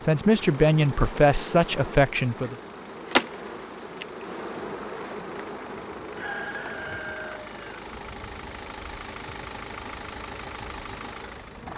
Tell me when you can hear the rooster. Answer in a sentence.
You can hear the rooster from 6.2 to 7.8 s.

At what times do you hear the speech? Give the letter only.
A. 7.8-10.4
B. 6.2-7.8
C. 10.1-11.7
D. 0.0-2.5
D.